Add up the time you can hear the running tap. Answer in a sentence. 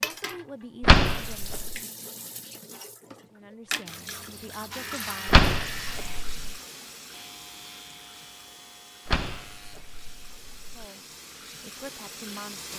You can hear the running tap for 13 seconds altogether.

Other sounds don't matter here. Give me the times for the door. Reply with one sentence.
The door can be heard from 0.8 to 1.8 s, from 5.2 to 6.5 s and from 9.1 to 10.8 s.